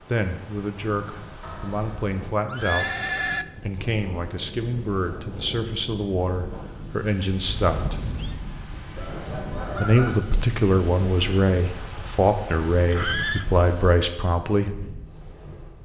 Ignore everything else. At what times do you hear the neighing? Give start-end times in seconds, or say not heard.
1.4-3.5, 7.5-8.4, 12.6-13.4.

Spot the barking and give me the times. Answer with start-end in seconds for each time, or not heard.
not heard.